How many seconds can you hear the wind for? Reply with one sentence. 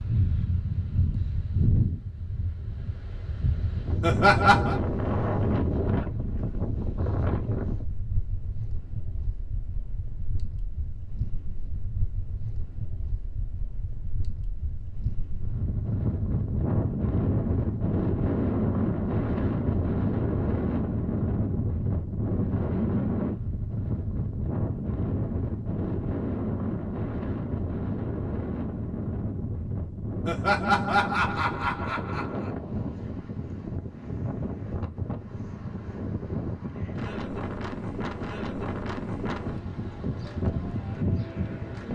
The wind can be heard for 42 seconds in total.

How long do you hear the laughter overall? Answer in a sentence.
You can hear the laughter for 3 seconds altogether.